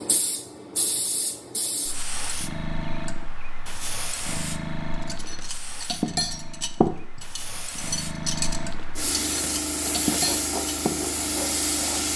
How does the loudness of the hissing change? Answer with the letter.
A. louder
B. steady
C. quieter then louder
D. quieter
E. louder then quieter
C.